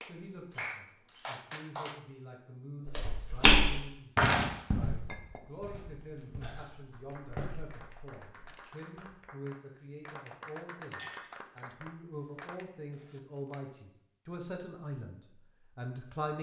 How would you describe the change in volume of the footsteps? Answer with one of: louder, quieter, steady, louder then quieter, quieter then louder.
quieter then louder.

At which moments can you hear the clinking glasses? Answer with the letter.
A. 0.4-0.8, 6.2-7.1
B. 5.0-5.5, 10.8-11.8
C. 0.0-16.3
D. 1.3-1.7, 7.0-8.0
B.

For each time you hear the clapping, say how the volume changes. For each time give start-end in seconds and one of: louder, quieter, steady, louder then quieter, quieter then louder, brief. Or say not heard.
0.0-2.0 brief
6.9-12.7 louder.